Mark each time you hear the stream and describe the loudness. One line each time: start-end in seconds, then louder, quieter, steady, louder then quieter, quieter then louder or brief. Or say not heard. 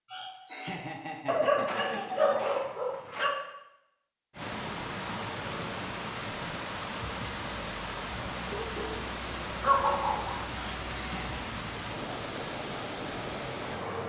4.3-14.0 steady.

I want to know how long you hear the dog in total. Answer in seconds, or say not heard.
4 s.